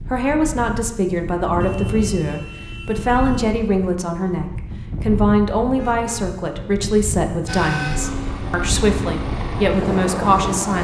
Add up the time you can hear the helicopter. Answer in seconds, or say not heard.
3 s.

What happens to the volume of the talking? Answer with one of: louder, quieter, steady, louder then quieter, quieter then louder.
steady.